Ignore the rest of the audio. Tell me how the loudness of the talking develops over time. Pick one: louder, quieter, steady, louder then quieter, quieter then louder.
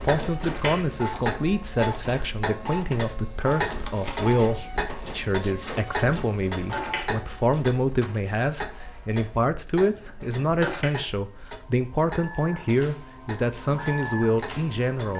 steady.